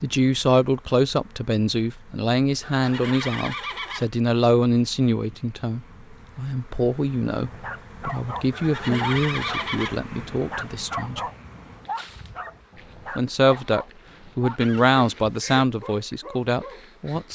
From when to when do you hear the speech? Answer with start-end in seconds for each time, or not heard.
0.0-11.2, 13.2-17.3.